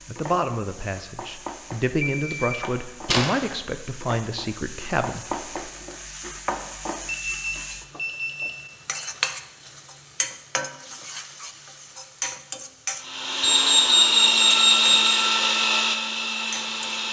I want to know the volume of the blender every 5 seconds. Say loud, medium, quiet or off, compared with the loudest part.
off, off, loud, loud.